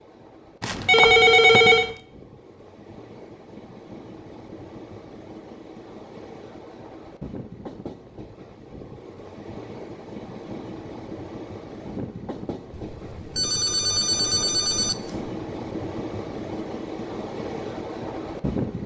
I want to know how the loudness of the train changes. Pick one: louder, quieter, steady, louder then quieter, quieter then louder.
louder.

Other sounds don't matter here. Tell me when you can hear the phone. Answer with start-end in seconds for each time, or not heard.
0.6-1.9, 12.7-15.3.